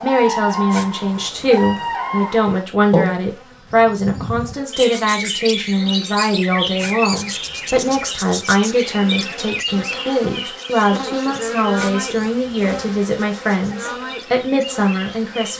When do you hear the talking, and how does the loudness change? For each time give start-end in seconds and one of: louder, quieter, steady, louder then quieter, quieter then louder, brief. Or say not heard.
0.0-15.5 steady.